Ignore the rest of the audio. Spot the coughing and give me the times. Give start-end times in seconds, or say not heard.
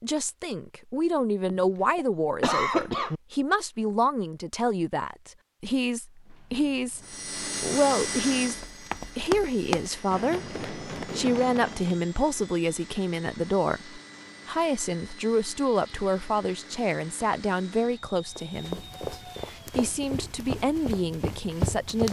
1.4-3.2.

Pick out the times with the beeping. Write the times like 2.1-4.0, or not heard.
not heard.